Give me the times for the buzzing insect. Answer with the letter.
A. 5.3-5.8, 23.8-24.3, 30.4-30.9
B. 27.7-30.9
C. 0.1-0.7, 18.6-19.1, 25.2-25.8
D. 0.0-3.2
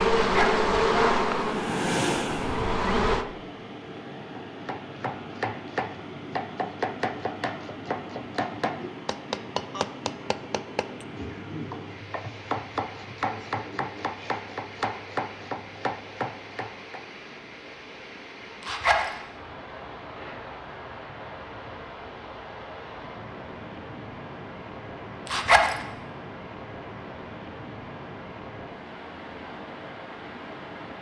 D.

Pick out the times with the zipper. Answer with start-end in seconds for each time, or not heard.
0.1-0.7, 18.6-19.1, 25.2-25.8.